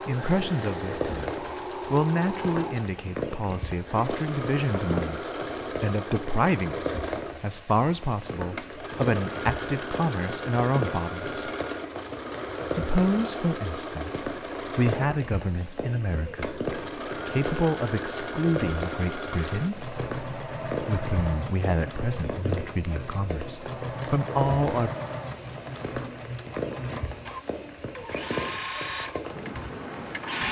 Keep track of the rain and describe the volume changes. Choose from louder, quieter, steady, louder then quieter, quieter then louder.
steady.